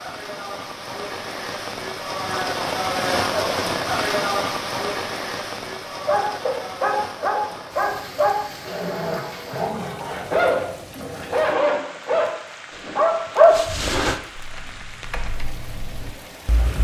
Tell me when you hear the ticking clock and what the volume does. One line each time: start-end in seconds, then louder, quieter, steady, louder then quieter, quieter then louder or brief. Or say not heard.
not heard.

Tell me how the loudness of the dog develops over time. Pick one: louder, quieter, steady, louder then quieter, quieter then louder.
louder.